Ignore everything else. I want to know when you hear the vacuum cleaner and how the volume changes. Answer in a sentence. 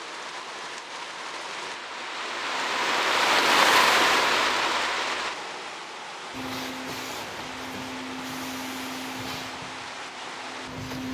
You can hear the vacuum cleaner from 6.3 to 11.0 s, getting quieter.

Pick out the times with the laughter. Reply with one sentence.
You can't hear the laughter here.